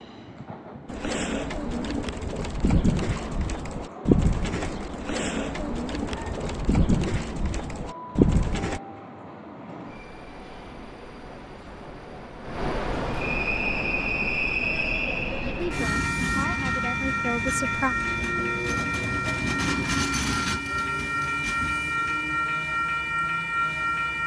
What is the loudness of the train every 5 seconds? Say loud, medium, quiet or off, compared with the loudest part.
quiet, quiet, loud, loud, loud.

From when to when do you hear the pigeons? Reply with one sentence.
The pigeons can be heard from 0.8 to 8.8 s.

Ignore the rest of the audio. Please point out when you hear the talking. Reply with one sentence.
The talking can be heard from 15.4 to 17.9 s.